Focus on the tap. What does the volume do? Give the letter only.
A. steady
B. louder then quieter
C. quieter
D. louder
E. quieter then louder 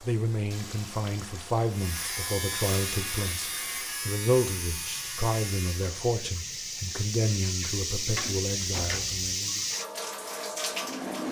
D.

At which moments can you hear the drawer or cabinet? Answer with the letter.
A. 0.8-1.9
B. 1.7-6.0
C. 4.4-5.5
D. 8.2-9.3
D.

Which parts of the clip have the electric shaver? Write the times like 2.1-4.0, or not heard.
1.7-6.0.